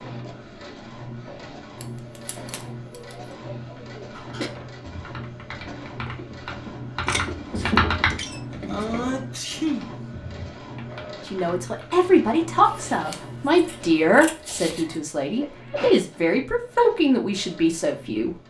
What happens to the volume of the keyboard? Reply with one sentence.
The volume of the keyboard goes up, then down.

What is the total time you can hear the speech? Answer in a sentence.
The speech can be heard for 7 seconds in total.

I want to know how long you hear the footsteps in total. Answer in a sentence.
The footsteps can't be heard in this clip.